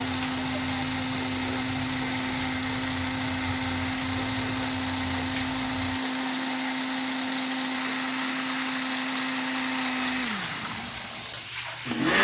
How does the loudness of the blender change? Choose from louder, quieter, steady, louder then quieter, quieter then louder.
steady.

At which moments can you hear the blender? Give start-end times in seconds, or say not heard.
0.0-12.1.